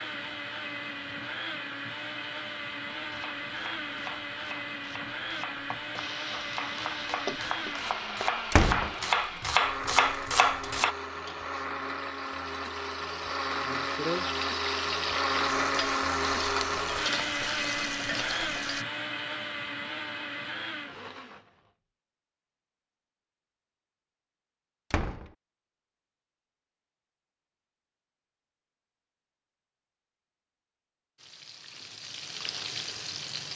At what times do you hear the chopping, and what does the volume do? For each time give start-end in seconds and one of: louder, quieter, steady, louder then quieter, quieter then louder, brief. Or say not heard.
3.0-10.9 louder.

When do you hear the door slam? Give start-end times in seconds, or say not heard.
8.5-8.9, 24.9-25.3.